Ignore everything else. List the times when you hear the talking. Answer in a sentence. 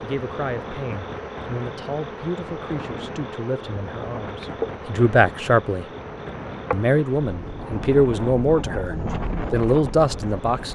The talking can be heard from 0.0 to 5.8 s and from 6.7 to 10.6 s.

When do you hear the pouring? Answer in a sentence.
The pouring can't be heard in this clip.